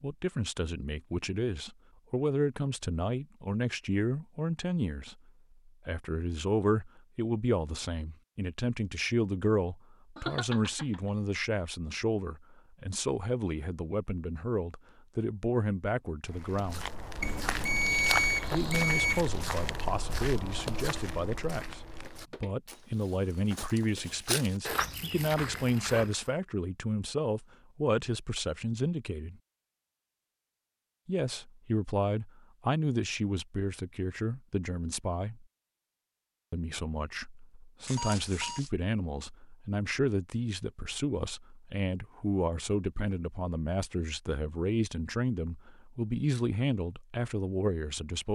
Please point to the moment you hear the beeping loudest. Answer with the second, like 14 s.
18 s.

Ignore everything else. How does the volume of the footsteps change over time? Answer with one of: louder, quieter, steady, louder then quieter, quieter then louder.
quieter then louder.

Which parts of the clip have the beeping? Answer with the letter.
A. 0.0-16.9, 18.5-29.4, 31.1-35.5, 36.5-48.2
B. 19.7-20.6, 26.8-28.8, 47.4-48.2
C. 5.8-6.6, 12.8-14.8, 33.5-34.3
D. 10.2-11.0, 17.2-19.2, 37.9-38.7
D.